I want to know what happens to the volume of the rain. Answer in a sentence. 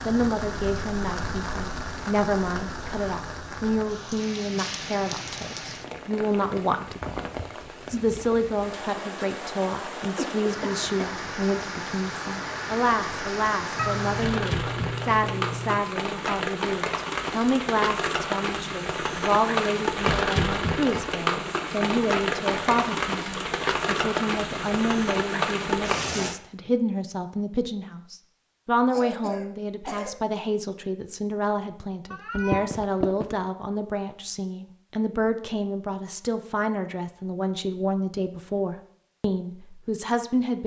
The loudness of the rain goes up.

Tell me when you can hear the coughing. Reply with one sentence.
The coughing can be heard from 10.2 to 11.2 s and from 28.9 to 30.1 s.